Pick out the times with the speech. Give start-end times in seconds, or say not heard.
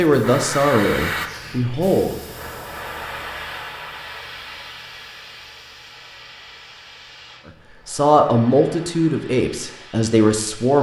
0.0-2.2, 7.8-10.7.